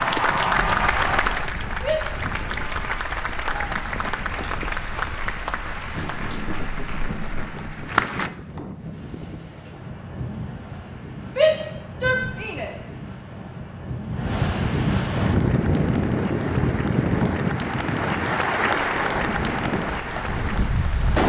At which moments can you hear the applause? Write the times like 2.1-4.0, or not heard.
0.0-8.3, 15.2-21.2.